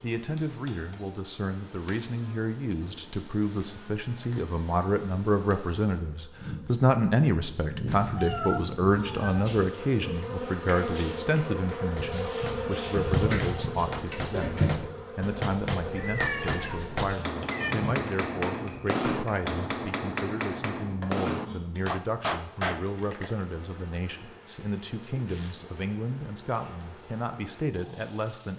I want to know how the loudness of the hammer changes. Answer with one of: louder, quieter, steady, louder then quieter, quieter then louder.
louder.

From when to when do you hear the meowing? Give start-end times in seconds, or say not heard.
7.8-9.6, 15.9-17.8.